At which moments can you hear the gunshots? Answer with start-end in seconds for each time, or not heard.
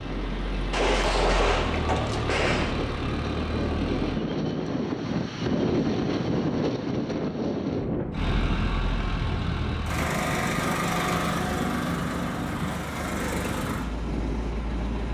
0.7-2.8.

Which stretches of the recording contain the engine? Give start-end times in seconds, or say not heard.
0.0-4.2, 8.1-15.1.